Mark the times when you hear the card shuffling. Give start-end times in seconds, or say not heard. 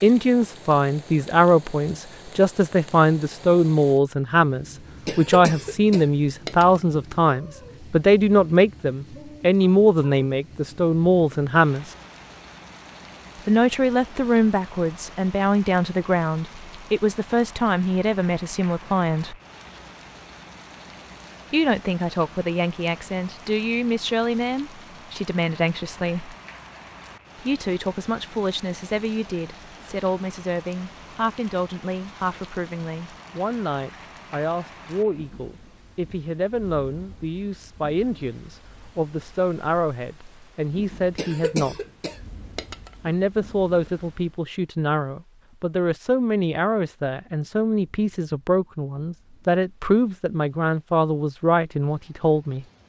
not heard.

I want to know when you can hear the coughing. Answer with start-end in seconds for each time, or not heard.
5.0-6.8, 41.1-43.1.